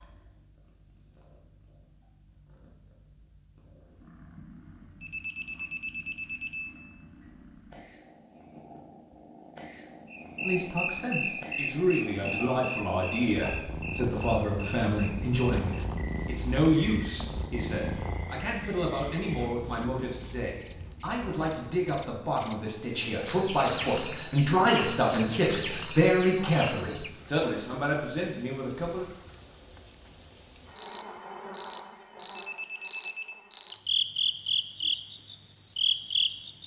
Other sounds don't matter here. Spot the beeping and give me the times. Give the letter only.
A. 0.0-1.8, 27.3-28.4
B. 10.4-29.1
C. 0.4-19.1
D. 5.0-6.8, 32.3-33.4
D.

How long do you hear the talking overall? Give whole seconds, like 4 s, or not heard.
19 s.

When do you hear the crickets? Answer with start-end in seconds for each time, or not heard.
10.1-36.6.